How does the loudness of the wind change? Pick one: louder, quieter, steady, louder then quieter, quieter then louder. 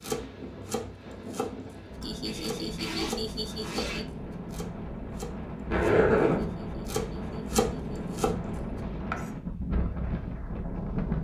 louder.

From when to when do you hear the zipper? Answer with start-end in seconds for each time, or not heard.
2.2-4.0, 5.7-6.5.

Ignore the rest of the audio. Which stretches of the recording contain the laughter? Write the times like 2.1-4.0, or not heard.
2.0-4.0, 6.3-8.2.